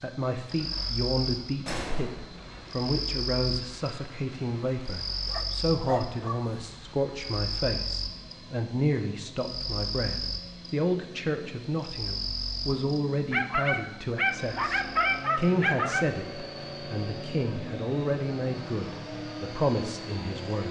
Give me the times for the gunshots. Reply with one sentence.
You can hear the gunshots from 1.6 to 2.7 s.